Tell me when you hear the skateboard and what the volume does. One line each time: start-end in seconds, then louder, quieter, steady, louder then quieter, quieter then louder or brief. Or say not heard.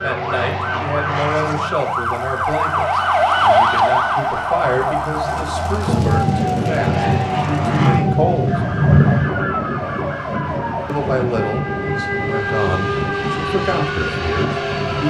not heard.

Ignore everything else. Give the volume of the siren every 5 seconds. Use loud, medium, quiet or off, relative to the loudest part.
loud, medium, medium.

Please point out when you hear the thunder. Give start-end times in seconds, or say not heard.
5.8-9.3.